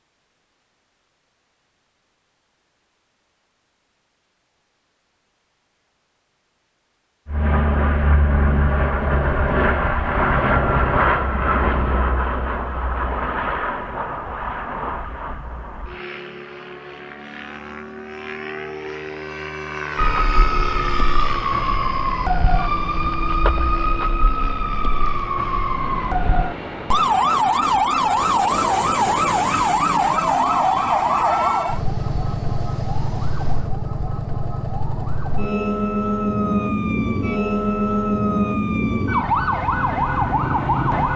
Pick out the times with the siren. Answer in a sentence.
The siren can be heard from 19.9 to 41.1 s.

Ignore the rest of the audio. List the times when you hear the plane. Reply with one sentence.
The plane can be heard from 7.2 to 33.7 s.